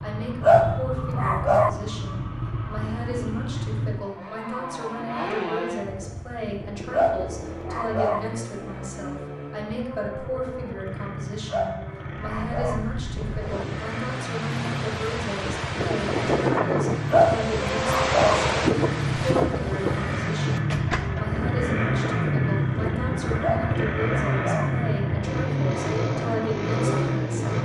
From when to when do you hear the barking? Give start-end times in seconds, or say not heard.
0.4-1.7, 6.9-8.2, 11.5-12.8, 17.1-18.4, 23.4-24.7.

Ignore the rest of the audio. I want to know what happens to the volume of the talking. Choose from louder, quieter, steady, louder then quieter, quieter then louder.
steady.